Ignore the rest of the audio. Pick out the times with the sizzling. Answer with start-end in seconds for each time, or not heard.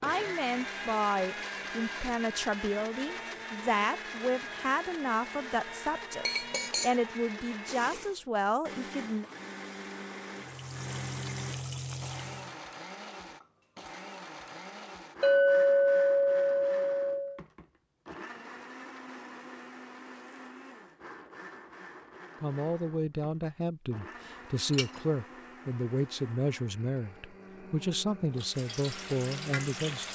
10.3-12.6, 28.4-30.1.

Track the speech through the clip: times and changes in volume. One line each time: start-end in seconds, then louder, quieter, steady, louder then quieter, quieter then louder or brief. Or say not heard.
0.0-9.2 steady
22.4-30.1 steady.